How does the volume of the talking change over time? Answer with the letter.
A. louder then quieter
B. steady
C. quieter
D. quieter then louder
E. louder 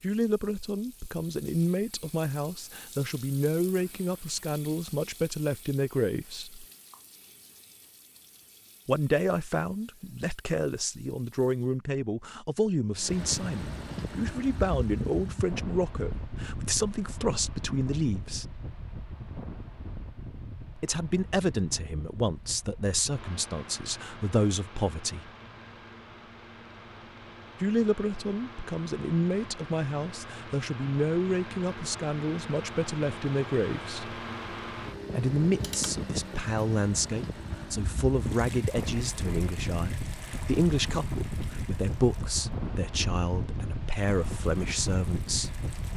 B.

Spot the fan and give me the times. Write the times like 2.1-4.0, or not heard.
12.9-45.9.